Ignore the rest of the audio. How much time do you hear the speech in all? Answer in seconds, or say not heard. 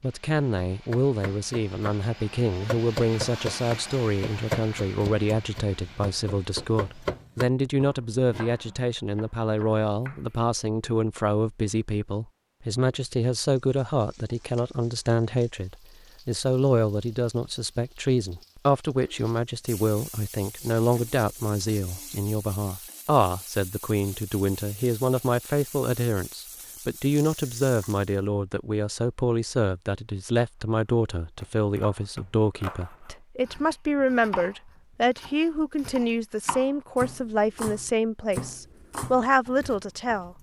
40 s.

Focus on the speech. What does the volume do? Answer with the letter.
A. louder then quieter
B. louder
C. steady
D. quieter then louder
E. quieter
C.